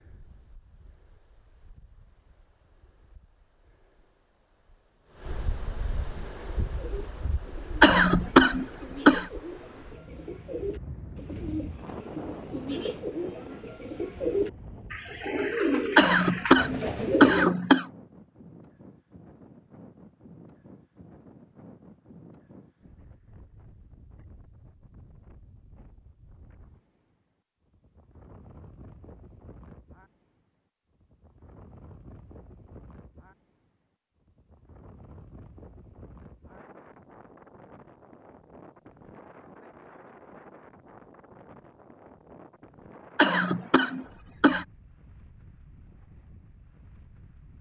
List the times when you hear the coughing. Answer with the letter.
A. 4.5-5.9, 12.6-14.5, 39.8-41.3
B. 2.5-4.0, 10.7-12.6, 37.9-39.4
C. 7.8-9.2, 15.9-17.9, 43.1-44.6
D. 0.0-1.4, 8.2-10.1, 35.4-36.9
C.